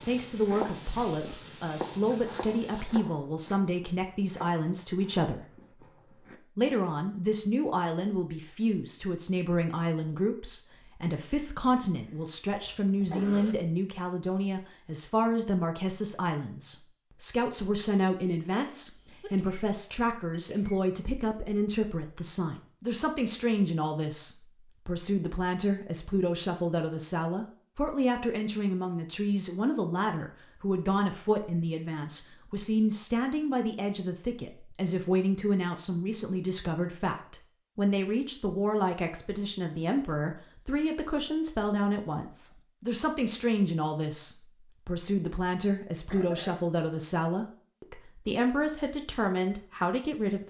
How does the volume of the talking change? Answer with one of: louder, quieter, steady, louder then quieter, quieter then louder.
steady.